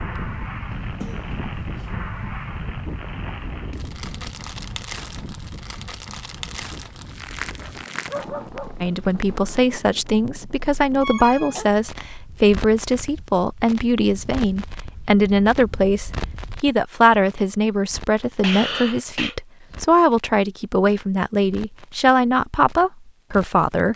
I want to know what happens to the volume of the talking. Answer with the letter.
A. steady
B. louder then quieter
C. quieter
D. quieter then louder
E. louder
A.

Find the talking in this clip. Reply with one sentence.
You can hear the talking from 8.8 to 23.9 s.